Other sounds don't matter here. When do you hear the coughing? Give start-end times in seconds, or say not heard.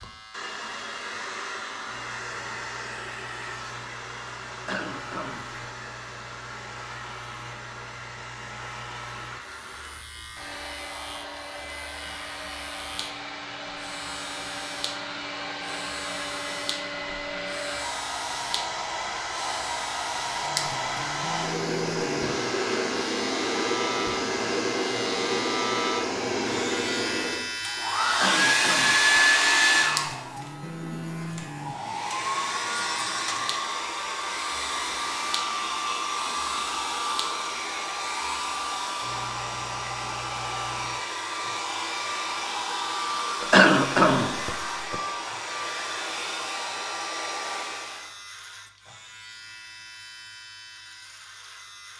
4.5-5.7, 28.1-29.2, 43.4-45.0.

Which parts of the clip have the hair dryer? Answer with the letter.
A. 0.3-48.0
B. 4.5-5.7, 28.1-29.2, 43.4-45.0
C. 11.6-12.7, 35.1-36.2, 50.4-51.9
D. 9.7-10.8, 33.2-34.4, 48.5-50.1
A.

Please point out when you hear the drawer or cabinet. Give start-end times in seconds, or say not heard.
not heard.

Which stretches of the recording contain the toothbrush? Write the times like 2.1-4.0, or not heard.
not heard.